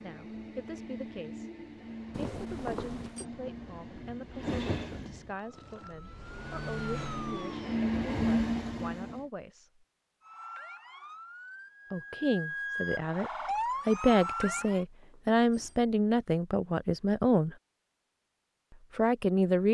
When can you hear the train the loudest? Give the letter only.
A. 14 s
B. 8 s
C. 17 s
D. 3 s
B.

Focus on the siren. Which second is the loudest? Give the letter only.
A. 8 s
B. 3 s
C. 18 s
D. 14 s
D.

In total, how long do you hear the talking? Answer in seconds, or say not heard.
15 s.